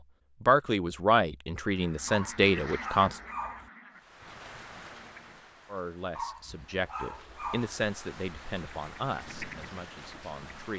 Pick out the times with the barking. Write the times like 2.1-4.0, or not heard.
2.0-3.7, 6.2-7.8.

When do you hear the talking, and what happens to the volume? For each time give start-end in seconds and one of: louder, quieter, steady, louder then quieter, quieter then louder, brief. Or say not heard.
0.4-3.2 brief
5.7-10.7 quieter.